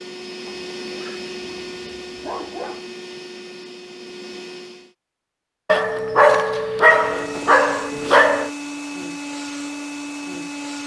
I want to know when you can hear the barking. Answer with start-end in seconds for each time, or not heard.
0.5-2.9, 5.7-8.5.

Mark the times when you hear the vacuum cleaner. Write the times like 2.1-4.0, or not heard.
0.0-5.0, 6.9-10.8.